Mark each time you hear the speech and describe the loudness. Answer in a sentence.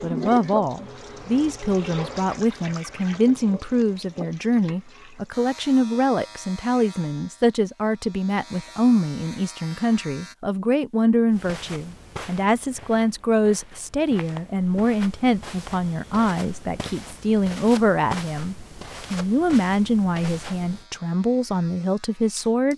The speech can be heard from 0.0 to 22.7 s, at a steady volume.